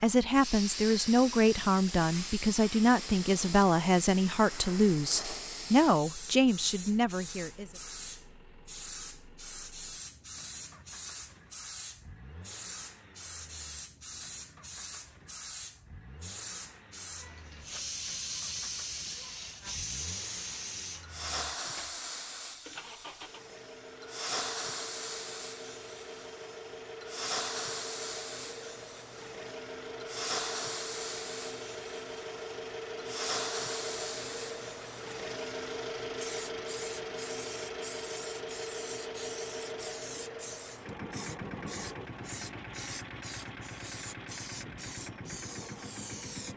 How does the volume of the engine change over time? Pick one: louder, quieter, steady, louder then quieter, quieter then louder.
louder.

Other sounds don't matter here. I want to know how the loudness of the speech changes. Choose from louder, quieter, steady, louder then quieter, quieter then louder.
steady.